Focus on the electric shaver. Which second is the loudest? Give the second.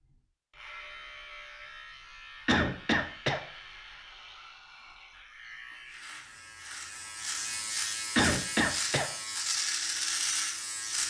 10 s.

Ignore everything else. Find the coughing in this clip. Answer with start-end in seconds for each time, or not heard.
2.5-3.4, 8.2-9.1.